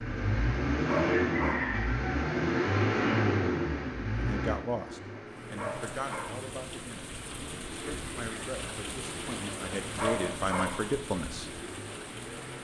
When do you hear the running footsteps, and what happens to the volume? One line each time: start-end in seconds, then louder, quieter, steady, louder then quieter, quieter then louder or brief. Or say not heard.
not heard.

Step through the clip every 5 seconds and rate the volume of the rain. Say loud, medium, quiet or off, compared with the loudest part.
off, loud, loud.